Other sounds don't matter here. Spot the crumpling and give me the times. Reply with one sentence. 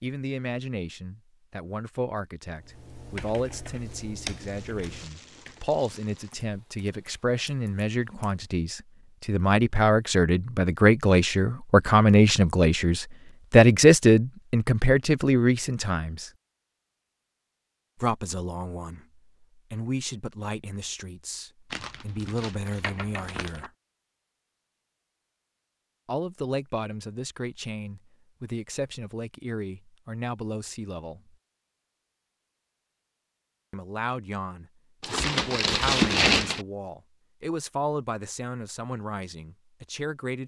You can hear the crumpling from 4.3 to 6.3 s, from 21.7 to 23.7 s and from 35.0 to 36.6 s.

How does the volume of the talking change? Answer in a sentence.
The volume of the talking goes up, then down.